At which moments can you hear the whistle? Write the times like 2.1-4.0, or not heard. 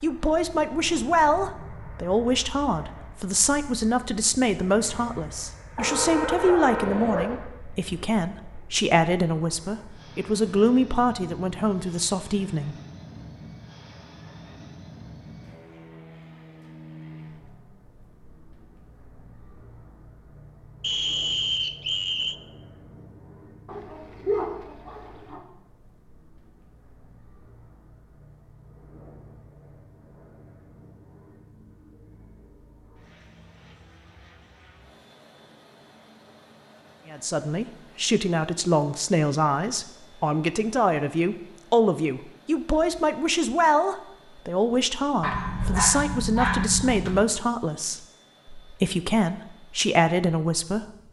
20.8-22.4.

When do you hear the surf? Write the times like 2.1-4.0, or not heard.
not heard.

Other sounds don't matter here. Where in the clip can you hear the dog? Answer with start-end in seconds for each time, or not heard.
5.8-7.4, 23.6-25.4, 45.2-47.2.